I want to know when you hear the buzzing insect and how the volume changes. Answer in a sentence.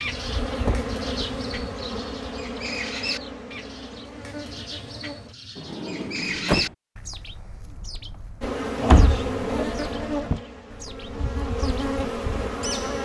The buzzing insect can be heard from 0.0 to 5.3 s, getting quieter; and from 8.4 to 13.0 s, getting quieter then louder.